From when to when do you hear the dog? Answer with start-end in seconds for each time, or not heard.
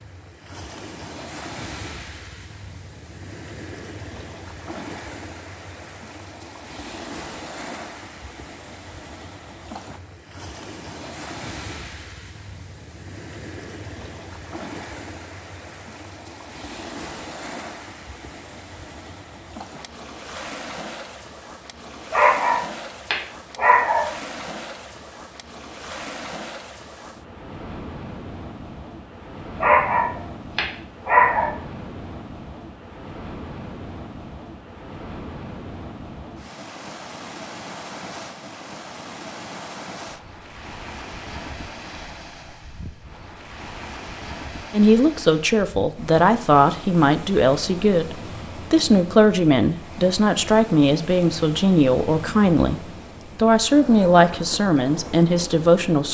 22.1-24.1, 29.6-31.5.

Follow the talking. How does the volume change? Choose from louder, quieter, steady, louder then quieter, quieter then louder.
steady.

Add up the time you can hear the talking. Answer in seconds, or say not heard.
11 s.